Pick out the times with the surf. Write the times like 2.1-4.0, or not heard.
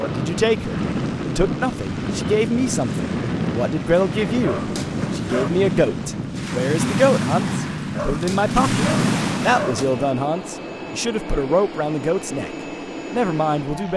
0.2-10.2.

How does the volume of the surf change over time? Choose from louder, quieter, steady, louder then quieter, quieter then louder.
louder.